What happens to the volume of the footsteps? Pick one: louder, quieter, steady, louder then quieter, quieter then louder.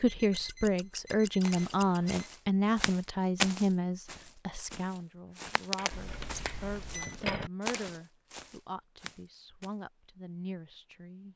louder then quieter.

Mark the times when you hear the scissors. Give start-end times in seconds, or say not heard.
0.3-2.1, 5.8-7.5.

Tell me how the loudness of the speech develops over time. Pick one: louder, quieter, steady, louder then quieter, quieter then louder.
quieter.